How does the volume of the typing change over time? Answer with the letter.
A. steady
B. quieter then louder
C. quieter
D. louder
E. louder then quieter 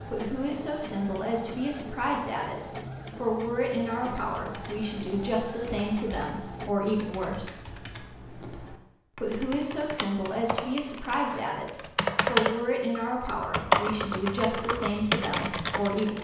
D.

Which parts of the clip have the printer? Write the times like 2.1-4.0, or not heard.
0.0-6.8.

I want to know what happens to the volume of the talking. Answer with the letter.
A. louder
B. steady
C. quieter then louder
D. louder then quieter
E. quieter
B.